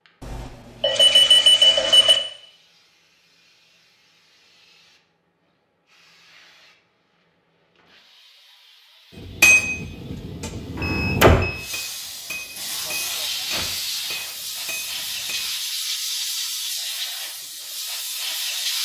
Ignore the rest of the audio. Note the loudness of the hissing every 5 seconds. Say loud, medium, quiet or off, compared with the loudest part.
quiet, quiet, loud, loud.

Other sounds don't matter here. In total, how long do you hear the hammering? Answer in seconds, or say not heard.
6 s.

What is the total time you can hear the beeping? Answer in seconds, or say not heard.
3 s.